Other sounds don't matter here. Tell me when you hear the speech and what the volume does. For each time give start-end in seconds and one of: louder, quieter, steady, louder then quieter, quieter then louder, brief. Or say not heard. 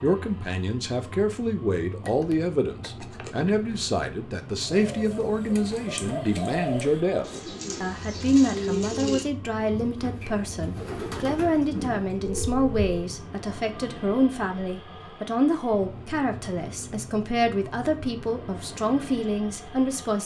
0.0-20.2 steady.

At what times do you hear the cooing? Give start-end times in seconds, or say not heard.
4.7-12.4.